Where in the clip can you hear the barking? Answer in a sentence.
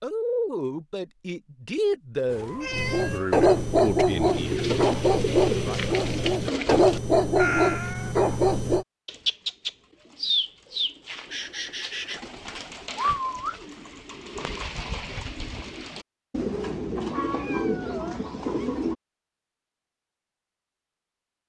The barking can be heard from 2.7 to 8.8 s.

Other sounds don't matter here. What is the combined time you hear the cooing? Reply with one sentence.
You can hear the cooing for 13 seconds altogether.